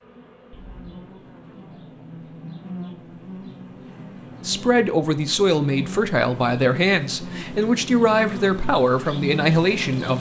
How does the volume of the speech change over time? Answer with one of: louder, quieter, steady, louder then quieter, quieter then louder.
steady.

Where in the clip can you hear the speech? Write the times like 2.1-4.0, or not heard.
4.5-10.1.